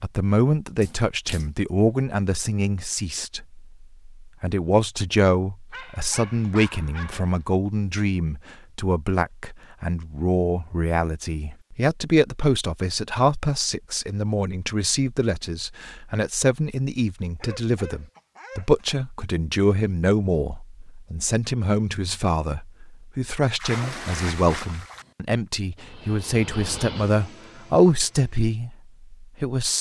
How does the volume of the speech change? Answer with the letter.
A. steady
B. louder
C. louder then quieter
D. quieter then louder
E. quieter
A.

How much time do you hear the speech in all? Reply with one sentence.
You can hear the speech for 30 seconds altogether.